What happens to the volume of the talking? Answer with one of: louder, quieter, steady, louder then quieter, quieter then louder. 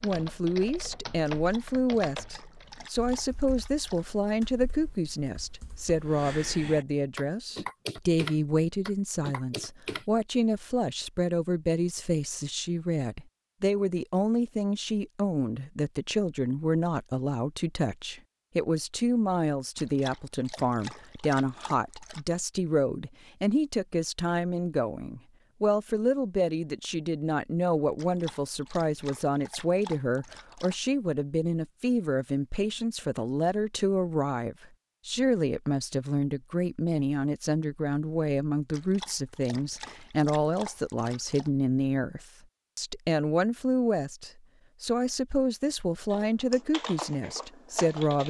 steady.